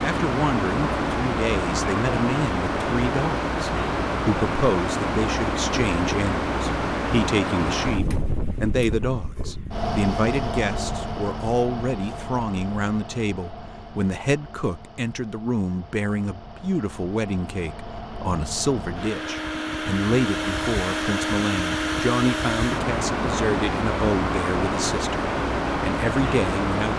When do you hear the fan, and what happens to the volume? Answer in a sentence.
The fan can be heard from 0.0 to 26.9 s, getting quieter then louder.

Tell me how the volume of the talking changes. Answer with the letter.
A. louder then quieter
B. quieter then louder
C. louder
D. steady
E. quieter
D.